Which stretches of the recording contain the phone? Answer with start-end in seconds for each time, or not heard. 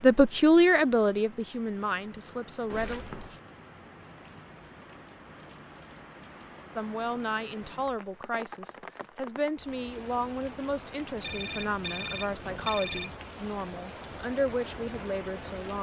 2.7-3.4, 11.2-13.2.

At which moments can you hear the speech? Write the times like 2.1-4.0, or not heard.
0.0-3.0, 6.8-15.7.